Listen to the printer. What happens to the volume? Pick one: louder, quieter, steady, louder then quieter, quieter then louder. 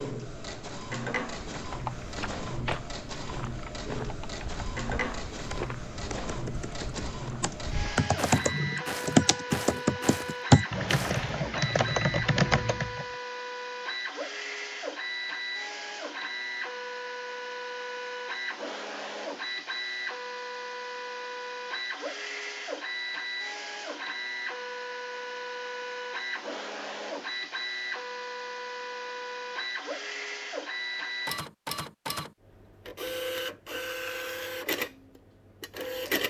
steady.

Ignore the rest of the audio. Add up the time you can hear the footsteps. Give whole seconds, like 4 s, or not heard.
10 s.